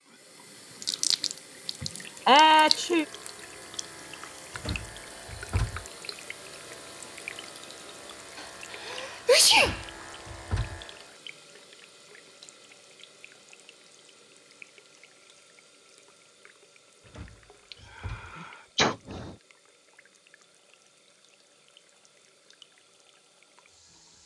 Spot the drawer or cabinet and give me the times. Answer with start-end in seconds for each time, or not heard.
4.5-5.8, 9.5-10.8, 17.1-18.4.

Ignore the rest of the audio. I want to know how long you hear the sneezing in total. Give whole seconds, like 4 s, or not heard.
4 s.